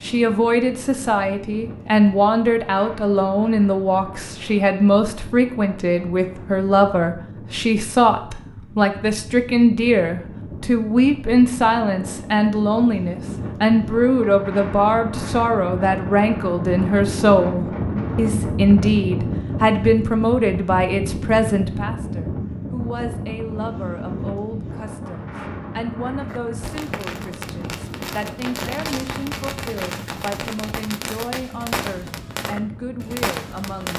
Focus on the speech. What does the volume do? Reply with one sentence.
The volume of the speech goes down.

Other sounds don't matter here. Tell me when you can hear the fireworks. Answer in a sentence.
The fireworks can be heard from 26.2 to 33.9 s.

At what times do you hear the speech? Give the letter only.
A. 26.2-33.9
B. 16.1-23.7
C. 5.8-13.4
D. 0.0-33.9
D.